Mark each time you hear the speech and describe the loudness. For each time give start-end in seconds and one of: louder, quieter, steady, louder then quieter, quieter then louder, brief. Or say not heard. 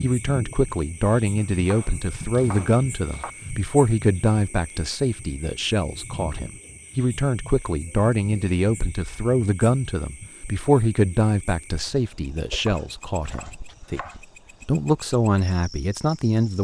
0.0-14.0 steady
14.7-16.5 brief.